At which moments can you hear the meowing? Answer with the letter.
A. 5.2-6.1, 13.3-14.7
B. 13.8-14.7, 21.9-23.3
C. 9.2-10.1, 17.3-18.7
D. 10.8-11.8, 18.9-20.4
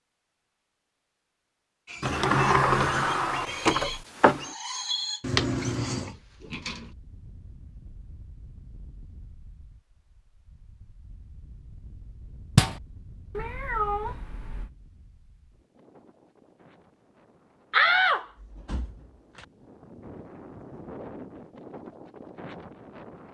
A.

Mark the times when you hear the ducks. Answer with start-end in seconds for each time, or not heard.
not heard.